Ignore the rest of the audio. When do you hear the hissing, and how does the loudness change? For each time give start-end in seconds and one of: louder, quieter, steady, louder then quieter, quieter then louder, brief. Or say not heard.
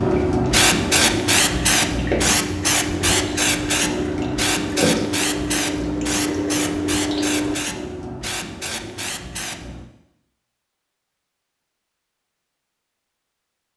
0.0-9.9 quieter.